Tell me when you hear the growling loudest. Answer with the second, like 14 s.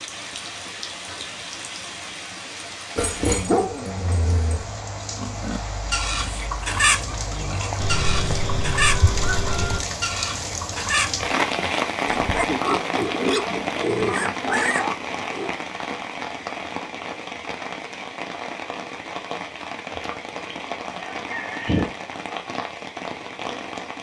3 s.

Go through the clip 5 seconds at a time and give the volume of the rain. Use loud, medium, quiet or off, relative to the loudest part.
medium, medium, loud, medium, medium.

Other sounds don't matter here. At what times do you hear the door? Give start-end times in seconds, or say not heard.
not heard.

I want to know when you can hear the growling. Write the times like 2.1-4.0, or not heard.
3.0-4.7.